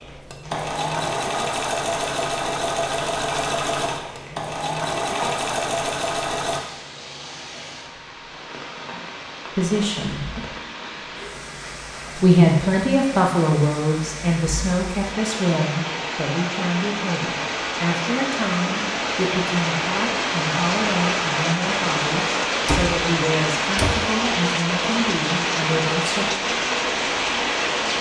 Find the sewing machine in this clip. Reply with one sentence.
You can hear the sewing machine from 0.0 to 6.6 s.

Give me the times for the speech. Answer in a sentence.
You can hear the speech from 9.6 to 10.2 s and from 12.2 to 26.3 s.